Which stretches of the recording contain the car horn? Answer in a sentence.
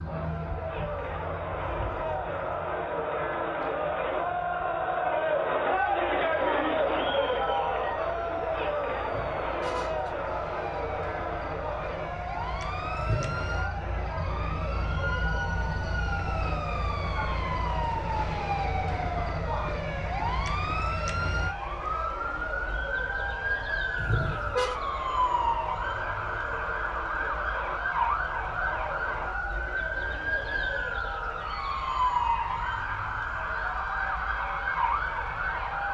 The car horn can be heard from 9.1 to 10.2 s, from 12.9 to 13.5 s and from 23.9 to 24.8 s.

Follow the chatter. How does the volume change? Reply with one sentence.
The volume of the chatter goes down.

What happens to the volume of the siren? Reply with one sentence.
The loudness of the siren goes up.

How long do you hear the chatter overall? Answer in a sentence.
You can hear the chatter for 36 seconds altogether.